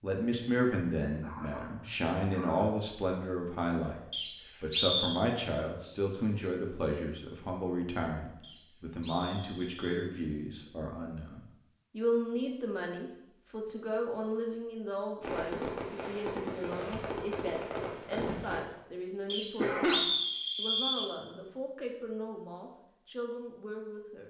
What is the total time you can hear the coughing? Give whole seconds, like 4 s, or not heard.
2 s.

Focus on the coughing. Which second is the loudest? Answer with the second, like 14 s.
20 s.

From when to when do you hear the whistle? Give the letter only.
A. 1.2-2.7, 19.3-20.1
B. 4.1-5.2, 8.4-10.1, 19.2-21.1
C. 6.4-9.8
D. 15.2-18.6
B.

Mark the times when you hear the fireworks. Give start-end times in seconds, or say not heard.
15.2-18.6.